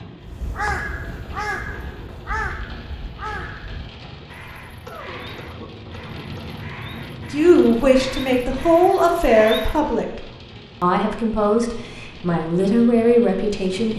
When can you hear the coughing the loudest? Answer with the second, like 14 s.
5 s.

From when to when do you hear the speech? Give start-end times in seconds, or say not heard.
7.3-10.2, 10.8-13.9.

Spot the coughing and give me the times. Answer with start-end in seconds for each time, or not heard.
4.8-6.7.